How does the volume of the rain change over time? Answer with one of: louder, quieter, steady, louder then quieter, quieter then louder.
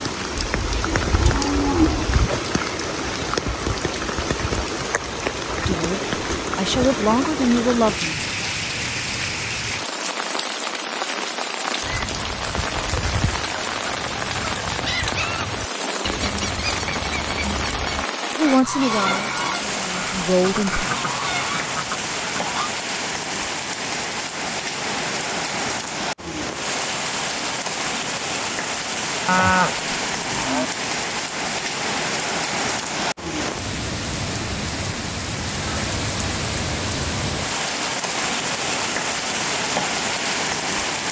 steady.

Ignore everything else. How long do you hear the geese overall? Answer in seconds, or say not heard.
11 s.